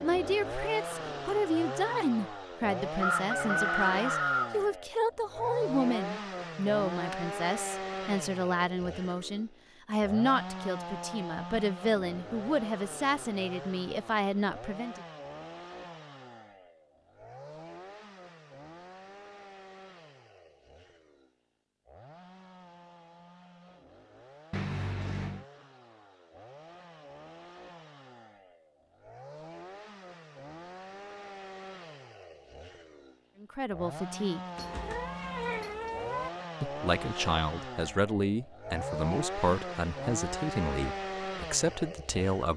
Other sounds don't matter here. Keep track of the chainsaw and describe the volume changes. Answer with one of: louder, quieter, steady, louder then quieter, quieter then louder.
quieter then louder.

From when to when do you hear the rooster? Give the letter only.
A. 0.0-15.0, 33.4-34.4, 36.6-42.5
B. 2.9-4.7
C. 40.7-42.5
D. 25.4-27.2
B.